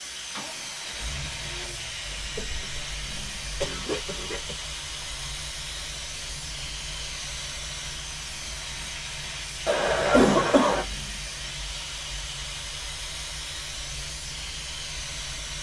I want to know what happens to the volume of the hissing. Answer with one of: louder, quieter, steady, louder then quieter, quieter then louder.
steady.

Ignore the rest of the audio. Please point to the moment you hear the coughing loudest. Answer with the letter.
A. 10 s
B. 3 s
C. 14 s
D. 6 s
A.